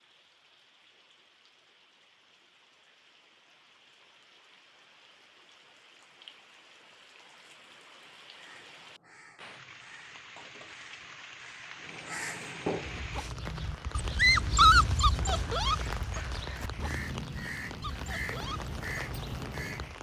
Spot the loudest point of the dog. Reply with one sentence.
The loudest moment of the dog is at 15 seconds.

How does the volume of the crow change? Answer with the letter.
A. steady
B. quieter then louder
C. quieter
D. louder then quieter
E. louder
E.